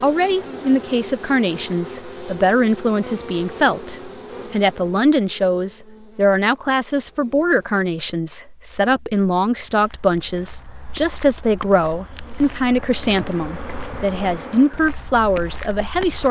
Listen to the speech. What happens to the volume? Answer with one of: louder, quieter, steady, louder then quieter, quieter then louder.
steady.